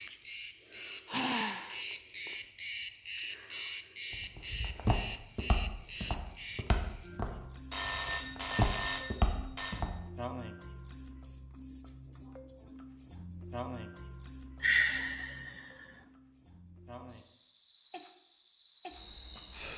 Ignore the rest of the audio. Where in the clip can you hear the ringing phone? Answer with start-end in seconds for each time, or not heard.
7.7-9.8.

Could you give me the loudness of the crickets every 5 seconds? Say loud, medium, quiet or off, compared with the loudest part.
loud, loud, loud, medium.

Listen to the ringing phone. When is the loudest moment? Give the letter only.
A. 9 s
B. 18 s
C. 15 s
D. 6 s
A.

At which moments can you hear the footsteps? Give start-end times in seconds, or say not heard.
4.1-9.9.